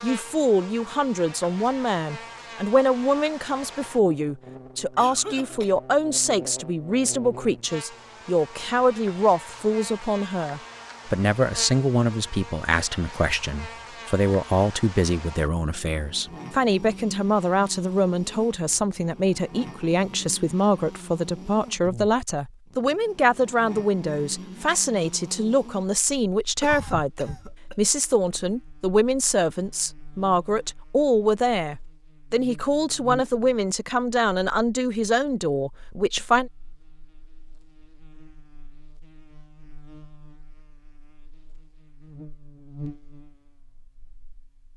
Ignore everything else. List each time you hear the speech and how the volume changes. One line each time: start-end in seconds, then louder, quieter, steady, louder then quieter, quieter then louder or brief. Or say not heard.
0.0-36.5 steady.